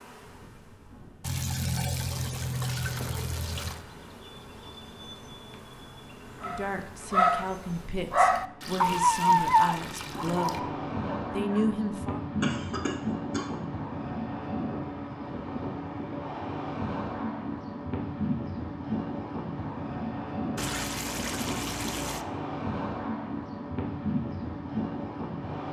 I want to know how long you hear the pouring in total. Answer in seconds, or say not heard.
6 s.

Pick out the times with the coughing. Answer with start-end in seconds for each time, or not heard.
12.4-13.5.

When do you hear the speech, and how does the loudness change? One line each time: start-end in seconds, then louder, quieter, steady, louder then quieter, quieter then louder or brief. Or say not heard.
6.4-10.7 steady
11.3-12.2 brief.